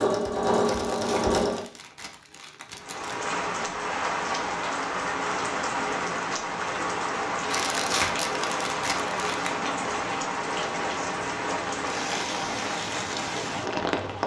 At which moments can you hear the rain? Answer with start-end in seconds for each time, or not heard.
2.8-14.2.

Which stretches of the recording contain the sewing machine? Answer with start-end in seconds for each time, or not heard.
0.0-1.6.